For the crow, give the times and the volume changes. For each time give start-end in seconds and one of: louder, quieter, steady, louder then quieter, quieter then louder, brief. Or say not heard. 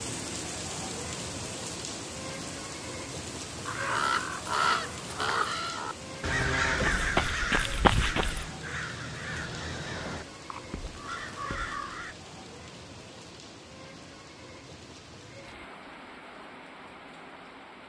3.6-12.2 quieter.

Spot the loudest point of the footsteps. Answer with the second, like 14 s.
8 s.